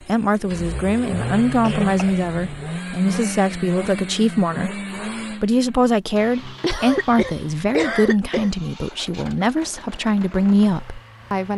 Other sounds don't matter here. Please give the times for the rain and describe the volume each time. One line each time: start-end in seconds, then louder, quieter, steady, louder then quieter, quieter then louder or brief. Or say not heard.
not heard.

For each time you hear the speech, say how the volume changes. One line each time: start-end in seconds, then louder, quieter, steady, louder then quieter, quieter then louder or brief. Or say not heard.
0.1-11.5 steady.